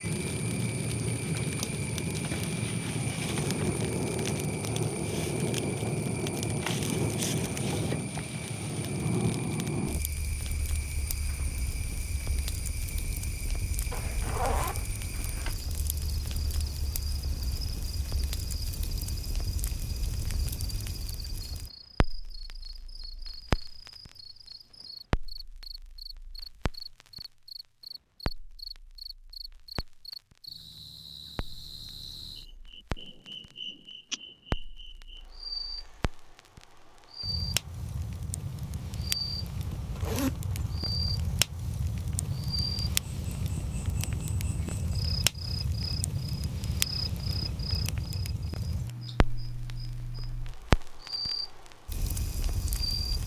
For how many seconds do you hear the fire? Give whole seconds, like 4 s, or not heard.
53 s.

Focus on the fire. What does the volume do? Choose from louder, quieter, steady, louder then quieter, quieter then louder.
quieter then louder.